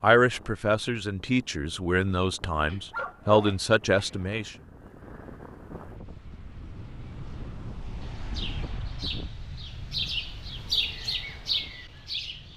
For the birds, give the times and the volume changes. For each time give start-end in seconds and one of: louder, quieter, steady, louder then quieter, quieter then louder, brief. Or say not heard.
6.0-12.5 louder.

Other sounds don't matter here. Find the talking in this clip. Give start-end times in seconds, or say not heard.
0.0-4.5.